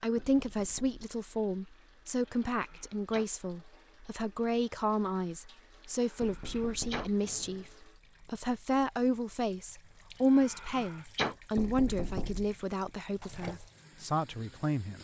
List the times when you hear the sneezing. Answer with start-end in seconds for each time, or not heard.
2.0-3.3, 6.0-7.7, 10.1-11.3.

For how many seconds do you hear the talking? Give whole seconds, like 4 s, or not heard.
15 s.